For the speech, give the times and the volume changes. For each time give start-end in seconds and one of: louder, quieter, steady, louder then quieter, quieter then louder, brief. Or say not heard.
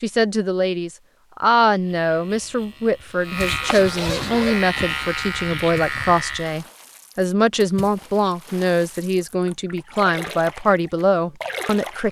0.0-12.0 steady.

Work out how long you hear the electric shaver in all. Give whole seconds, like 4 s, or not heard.
5 s.